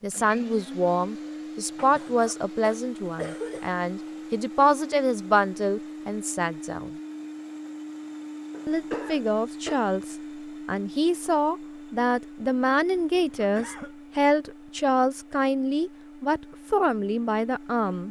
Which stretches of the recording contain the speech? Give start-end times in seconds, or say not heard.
0.0-6.9, 8.7-18.0.